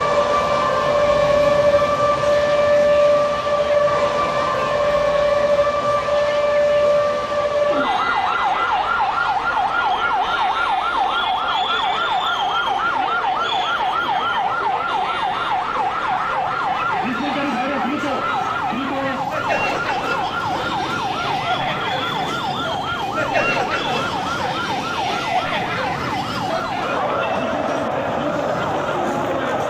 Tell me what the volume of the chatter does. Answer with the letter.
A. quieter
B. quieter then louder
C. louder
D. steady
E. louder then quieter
C.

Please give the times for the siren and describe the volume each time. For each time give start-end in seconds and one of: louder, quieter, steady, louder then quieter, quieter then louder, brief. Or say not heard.
0.0-29.6 quieter.